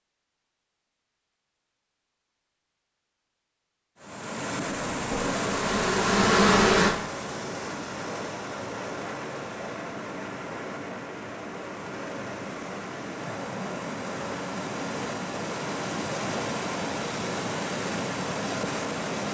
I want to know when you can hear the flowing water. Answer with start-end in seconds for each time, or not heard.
4.0-19.2.